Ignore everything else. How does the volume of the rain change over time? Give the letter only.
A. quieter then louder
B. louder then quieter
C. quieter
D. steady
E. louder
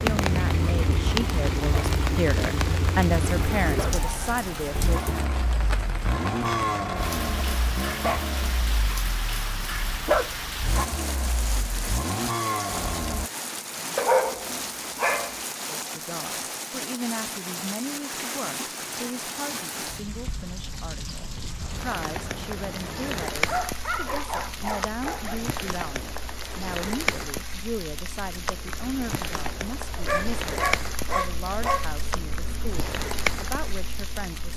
D.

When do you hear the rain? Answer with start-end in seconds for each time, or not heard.
0.0-34.5.